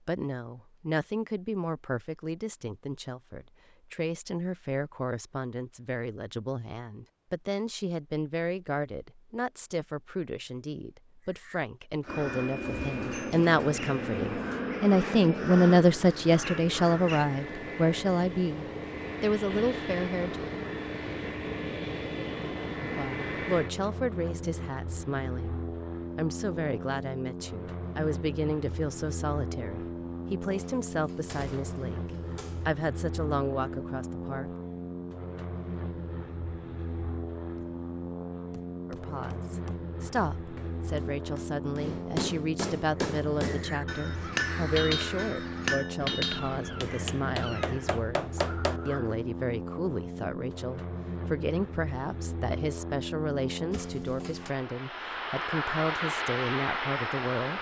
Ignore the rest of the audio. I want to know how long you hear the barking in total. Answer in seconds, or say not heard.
not heard.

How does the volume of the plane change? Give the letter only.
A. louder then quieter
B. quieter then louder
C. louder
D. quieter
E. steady
E.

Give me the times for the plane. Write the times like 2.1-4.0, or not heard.
12.1-57.5.